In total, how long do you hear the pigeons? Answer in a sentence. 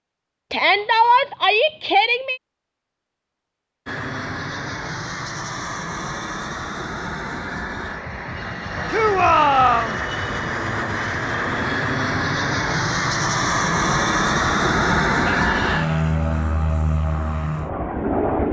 You can't hear the pigeons here.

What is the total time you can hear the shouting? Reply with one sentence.
The shouting can be heard for 4 seconds in total.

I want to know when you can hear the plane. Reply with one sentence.
The plane can be heard from 3.9 to 18.4 s.